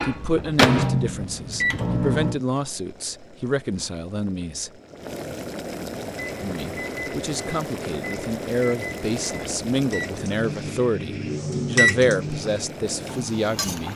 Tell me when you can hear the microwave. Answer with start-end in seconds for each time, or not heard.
0.0-2.4, 6.0-13.9.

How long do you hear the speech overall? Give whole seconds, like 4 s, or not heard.
12 s.